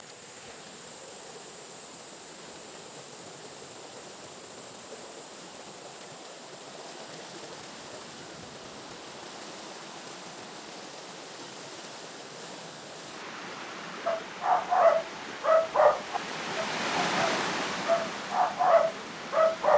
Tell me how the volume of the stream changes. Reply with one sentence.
The volume of the stream goes up.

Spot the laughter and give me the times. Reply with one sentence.
The laughter can't be heard in this clip.